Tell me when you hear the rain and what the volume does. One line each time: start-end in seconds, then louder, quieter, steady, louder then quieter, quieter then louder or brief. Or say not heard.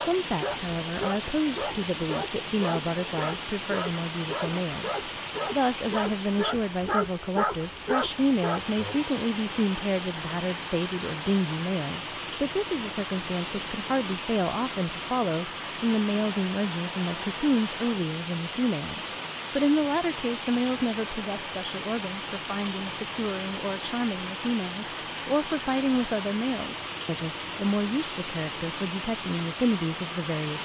0.0-30.6 steady.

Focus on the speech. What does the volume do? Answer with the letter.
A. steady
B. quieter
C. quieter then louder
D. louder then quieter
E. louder
A.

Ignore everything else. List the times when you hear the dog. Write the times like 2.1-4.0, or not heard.
0.0-9.0.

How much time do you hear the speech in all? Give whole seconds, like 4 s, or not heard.
30 s.